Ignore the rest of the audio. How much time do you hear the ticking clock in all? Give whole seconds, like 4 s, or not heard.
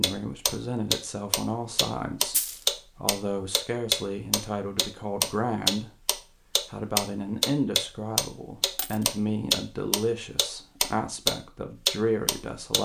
13 s.